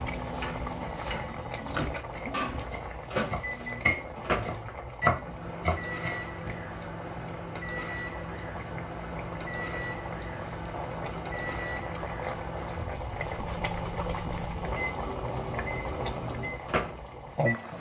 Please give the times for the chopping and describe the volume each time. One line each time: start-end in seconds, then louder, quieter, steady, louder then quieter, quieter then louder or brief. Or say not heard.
0.2-6.3 louder.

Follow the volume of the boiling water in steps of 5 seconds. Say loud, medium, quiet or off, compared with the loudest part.
loud, medium, loud, loud.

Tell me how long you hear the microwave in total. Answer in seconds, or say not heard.
18 s.